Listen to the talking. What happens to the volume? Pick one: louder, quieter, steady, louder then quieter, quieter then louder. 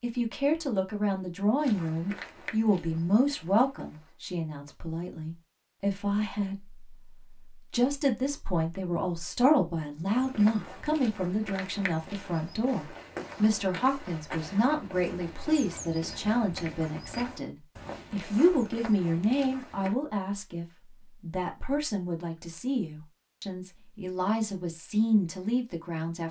steady.